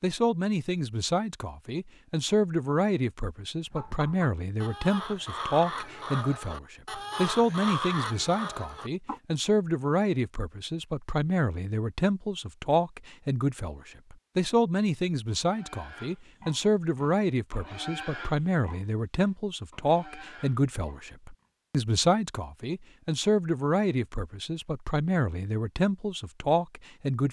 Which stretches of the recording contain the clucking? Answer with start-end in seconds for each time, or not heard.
3.7-9.2.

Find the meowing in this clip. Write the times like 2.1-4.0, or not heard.
not heard.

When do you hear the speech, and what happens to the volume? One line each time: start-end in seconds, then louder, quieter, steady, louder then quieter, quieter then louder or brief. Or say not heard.
0.0-27.2 steady.